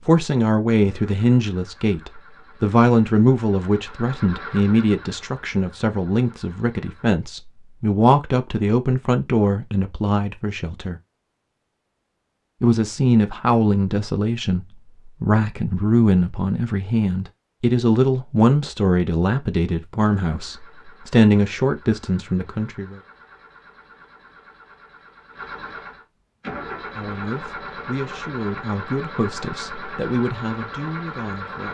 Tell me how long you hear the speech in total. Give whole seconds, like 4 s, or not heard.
26 s.